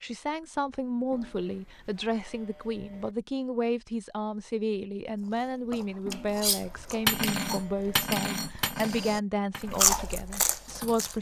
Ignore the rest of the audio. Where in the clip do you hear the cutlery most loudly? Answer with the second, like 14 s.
7 s.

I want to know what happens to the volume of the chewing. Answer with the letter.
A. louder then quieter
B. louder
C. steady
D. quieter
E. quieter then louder
E.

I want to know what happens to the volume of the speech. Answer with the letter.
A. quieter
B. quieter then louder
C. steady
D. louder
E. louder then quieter
C.